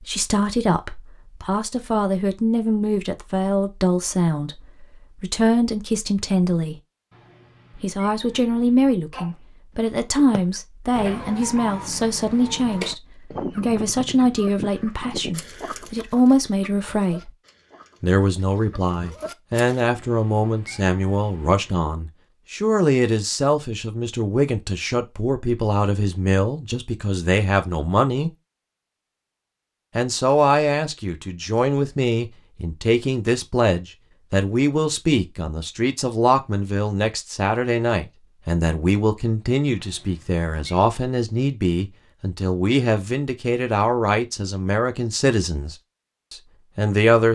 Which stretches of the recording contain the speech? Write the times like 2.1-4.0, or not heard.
0.0-6.8, 7.8-17.3, 18.0-28.3, 29.9-47.3.